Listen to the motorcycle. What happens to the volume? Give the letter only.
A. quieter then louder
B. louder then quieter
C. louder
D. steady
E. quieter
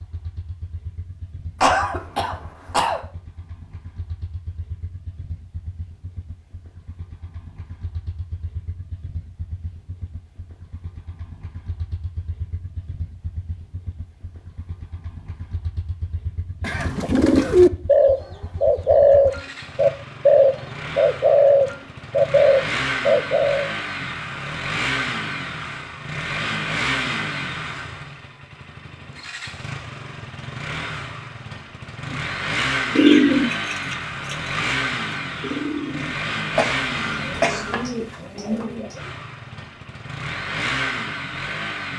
C.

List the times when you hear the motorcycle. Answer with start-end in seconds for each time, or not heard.
0.0-41.9.